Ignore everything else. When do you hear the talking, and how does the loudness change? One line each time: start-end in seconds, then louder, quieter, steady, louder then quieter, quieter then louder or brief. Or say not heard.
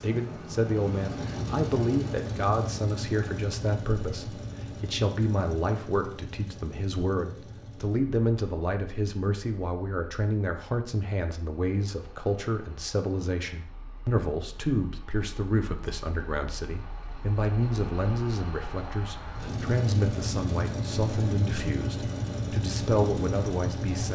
0.0-24.1 steady.